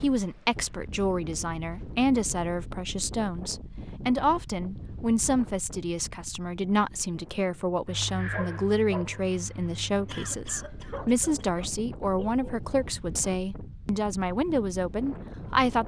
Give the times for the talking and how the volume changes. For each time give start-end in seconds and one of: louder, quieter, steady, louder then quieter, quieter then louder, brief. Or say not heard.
0.0-15.8 steady.